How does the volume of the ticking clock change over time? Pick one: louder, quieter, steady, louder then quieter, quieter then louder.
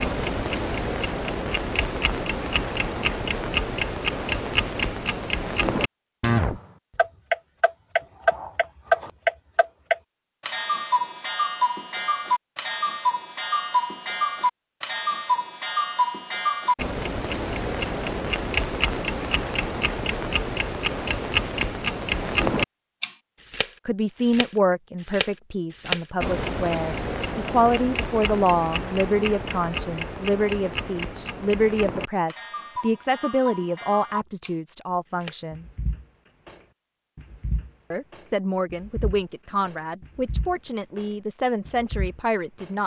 quieter.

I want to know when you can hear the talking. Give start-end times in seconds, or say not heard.
23.9-35.6, 37.9-42.8.